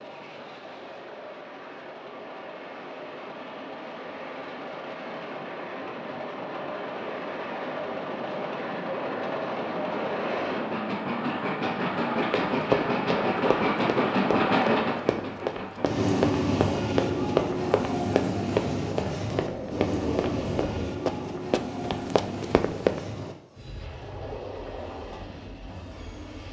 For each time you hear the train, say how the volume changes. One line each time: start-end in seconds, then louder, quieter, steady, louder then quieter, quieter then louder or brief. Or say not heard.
0.0-26.4 louder then quieter.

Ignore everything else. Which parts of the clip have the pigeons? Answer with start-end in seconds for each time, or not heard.
19.3-20.9.